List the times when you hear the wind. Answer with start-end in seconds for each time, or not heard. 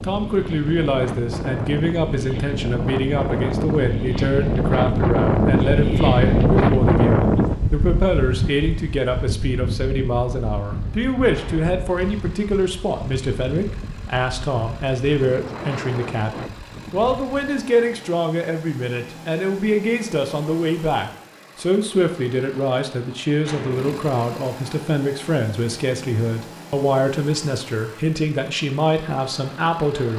0.0-17.6.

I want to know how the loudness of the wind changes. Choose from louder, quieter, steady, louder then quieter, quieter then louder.
louder then quieter.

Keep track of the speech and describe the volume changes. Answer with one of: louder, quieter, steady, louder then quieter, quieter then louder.
steady.